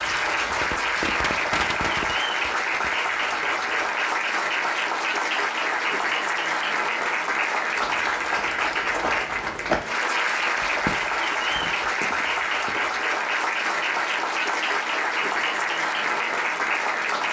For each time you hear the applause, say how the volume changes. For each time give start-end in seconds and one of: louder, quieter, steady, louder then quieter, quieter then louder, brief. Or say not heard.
0.0-17.2 steady.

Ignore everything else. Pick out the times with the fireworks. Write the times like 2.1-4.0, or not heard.
0.0-3.8.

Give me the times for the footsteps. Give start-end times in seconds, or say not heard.
7.8-13.1.